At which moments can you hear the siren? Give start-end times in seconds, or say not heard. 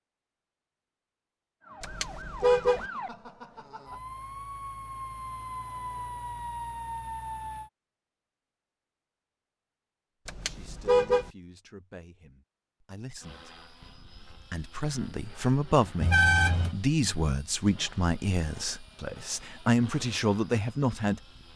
1.6-7.7.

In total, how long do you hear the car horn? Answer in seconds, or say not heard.
3 s.